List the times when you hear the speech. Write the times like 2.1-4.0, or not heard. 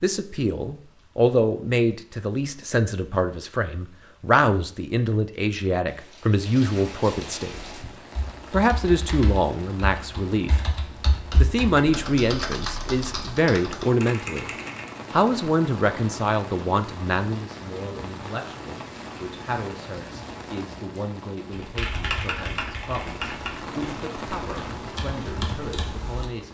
0.0-7.5, 8.5-10.8, 11.4-14.5, 15.1-26.4.